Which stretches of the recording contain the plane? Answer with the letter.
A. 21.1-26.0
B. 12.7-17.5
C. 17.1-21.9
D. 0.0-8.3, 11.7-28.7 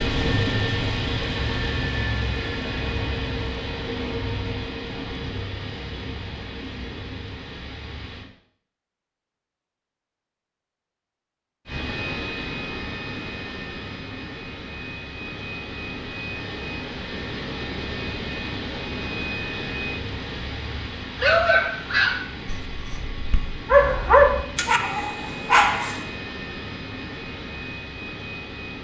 D.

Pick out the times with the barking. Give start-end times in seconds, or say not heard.
21.1-26.0.